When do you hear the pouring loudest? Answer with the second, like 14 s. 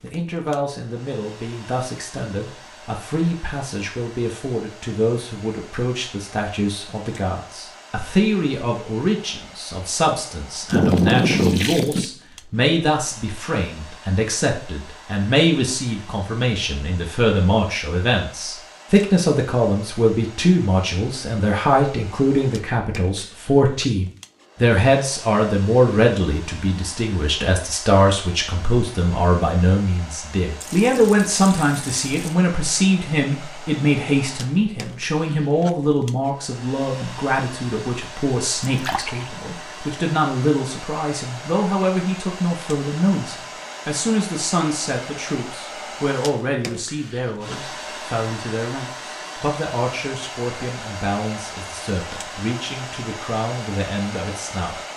11 s.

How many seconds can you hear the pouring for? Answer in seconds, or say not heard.
4 s.